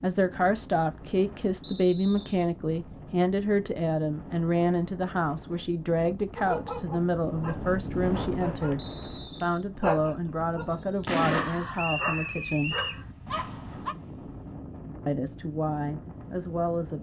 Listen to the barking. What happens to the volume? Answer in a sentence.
The loudness of the barking goes up, then down.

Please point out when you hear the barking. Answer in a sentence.
The barking can be heard from 6.3 to 13.9 s.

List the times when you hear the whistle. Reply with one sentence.
You can hear the whistle from 1.6 to 2.5 s, from 8.8 to 9.7 s and from 11.8 to 13.1 s.